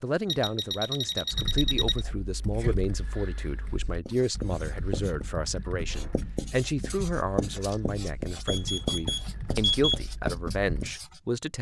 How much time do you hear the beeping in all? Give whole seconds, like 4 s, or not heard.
3 s.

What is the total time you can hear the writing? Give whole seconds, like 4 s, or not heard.
7 s.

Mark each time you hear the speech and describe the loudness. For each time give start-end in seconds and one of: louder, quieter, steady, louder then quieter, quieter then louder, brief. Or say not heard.
0.0-11.5 steady.